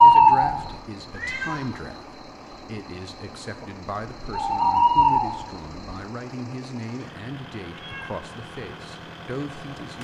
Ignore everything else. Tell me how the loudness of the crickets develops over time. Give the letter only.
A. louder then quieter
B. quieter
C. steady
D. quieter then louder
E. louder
D.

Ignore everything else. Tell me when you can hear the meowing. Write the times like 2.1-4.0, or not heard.
1.1-1.9, 7.7-8.2.